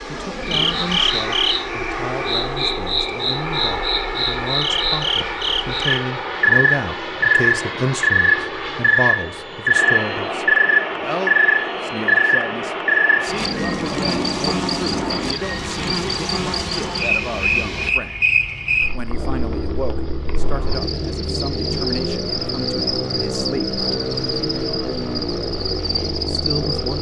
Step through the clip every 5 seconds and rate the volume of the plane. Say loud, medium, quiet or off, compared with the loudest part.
loud, loud, loud, medium, loud, loud.